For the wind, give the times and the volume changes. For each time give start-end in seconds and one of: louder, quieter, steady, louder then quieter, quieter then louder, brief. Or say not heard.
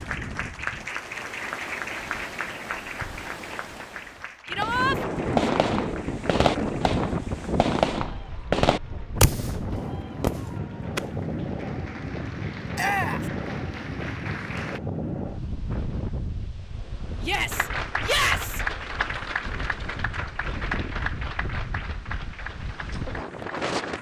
0.0-23.9 louder then quieter.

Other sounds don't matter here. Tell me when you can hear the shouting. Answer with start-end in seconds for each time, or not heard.
4.5-5.0, 12.8-13.2, 17.2-18.6.